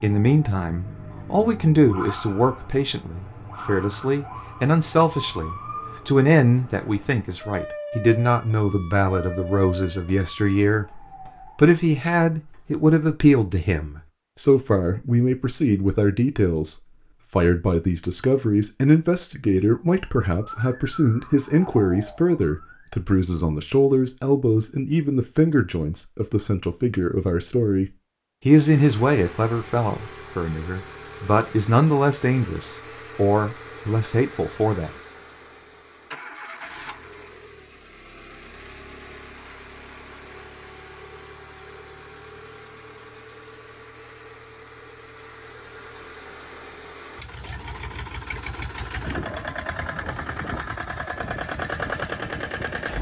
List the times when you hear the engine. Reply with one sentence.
The engine can be heard from 28.6 to 52.9 s.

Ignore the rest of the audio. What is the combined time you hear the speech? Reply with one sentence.
The speech can be heard for 34 seconds in total.